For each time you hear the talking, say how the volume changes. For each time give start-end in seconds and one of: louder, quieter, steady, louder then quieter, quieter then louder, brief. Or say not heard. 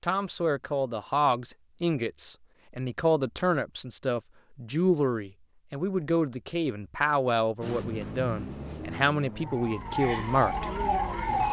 0.0-10.7 steady.